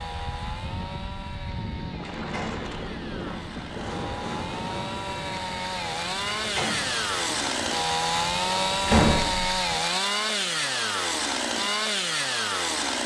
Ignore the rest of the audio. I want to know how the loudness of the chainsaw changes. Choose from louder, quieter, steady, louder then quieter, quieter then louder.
louder.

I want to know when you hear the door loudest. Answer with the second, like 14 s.
9 s.